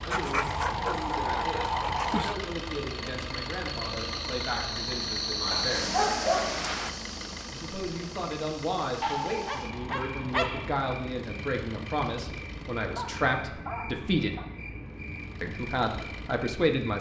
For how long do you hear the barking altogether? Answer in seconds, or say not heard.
7 s.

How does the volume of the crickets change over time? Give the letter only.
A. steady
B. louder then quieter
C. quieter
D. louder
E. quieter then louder
C.